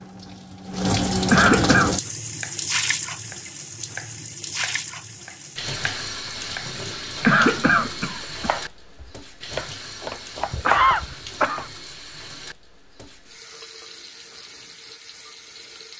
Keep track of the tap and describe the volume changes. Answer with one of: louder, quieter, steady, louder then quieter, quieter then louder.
quieter.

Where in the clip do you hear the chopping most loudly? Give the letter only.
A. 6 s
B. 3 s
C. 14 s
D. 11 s
D.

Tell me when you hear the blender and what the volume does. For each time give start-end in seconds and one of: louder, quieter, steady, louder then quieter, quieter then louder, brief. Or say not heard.
not heard.